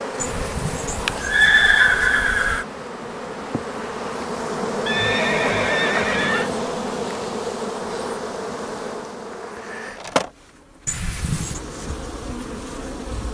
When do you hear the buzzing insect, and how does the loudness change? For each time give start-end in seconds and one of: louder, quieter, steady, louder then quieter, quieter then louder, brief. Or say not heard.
0.0-13.2 louder then quieter.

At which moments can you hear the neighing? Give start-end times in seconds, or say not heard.
0.2-2.6, 4.8-6.5, 10.8-11.6.